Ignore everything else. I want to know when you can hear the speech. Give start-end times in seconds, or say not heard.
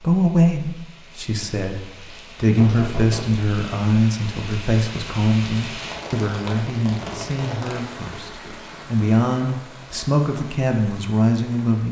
0.0-11.8.